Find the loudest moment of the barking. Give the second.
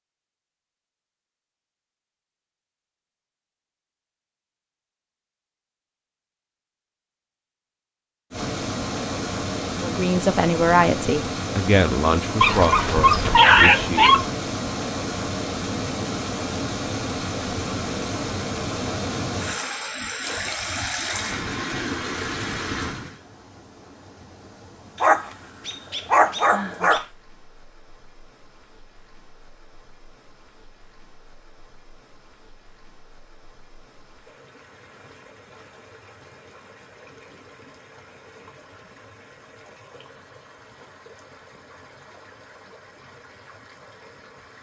14 s.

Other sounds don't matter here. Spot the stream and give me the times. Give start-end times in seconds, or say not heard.
8.3-44.5.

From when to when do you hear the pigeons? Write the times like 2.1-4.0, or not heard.
not heard.